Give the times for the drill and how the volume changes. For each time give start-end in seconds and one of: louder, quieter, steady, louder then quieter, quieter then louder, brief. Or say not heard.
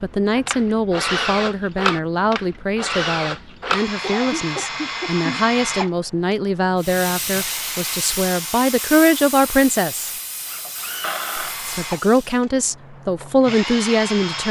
0.0-14.4 quieter then louder.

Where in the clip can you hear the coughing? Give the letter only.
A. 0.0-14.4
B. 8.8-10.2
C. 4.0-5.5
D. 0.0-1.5
C.